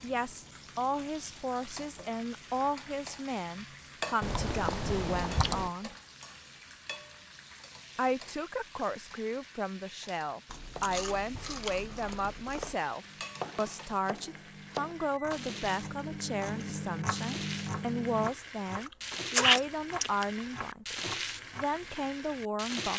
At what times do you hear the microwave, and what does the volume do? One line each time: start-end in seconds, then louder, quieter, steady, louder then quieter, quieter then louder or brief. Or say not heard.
13.0-18.3 louder.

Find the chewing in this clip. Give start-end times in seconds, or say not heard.
4.2-5.7, 10.4-12.8, 18.8-20.4.